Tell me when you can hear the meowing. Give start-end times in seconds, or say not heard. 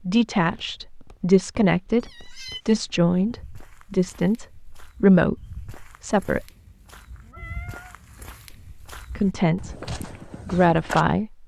2.0-2.6, 6.5-8.3.